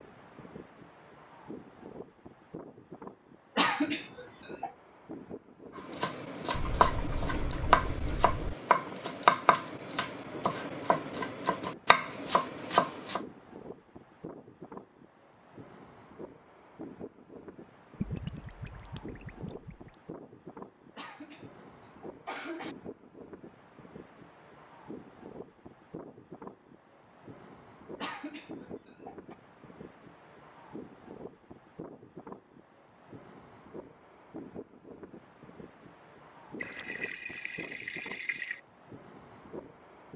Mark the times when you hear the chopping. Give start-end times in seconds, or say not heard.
5.8-13.2.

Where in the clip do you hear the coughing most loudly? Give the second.
4 s.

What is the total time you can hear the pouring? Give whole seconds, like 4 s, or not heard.
6 s.